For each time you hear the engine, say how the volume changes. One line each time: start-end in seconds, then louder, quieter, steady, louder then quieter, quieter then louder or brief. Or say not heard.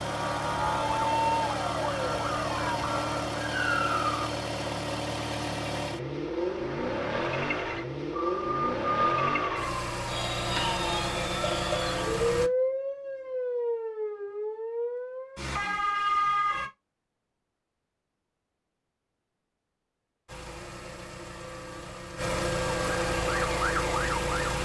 0.0-12.5 steady
20.2-24.6 louder.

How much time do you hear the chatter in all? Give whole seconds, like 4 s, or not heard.
not heard.